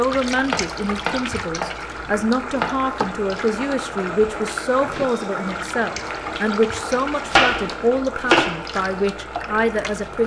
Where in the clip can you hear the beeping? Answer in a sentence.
The beeping can't be heard in this clip.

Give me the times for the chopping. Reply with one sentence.
You can hear the chopping from 0.5 to 2.7 s and from 6.8 to 8.6 s.